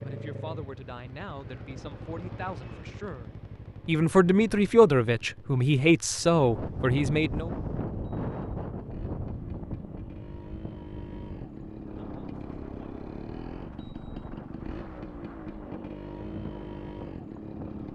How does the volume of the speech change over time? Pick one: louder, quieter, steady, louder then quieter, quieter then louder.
louder.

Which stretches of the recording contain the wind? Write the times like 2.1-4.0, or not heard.
6.2-17.8.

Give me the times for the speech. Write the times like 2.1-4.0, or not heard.
0.0-7.5.